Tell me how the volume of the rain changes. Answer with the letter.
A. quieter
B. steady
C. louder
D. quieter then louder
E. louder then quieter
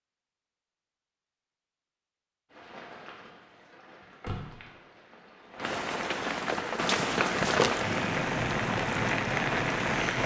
C.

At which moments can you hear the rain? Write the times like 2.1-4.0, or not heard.
2.5-10.2.